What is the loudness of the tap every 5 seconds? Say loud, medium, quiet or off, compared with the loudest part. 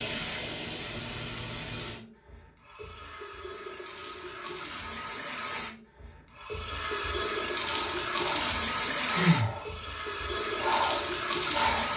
medium, loud, loud.